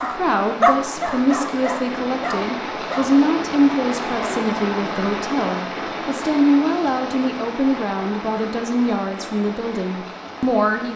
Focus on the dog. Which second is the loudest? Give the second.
1 s.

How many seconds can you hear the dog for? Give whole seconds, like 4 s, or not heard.
3 s.